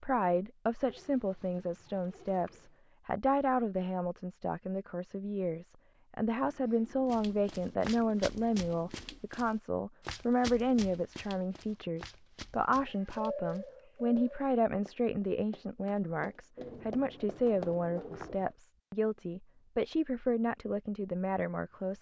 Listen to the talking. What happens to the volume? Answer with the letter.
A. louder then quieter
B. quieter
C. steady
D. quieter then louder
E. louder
C.